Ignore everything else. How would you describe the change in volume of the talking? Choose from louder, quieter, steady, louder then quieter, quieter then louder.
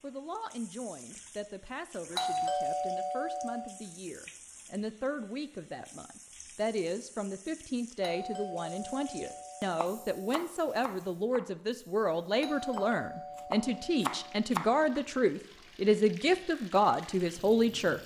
louder.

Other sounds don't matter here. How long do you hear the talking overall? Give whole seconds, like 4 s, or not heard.
18 s.